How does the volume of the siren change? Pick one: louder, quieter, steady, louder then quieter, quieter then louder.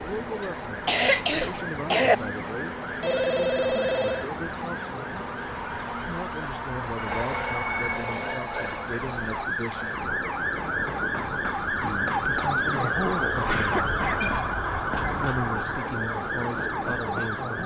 louder.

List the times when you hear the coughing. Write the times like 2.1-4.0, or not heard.
0.4-2.1, 12.7-14.3.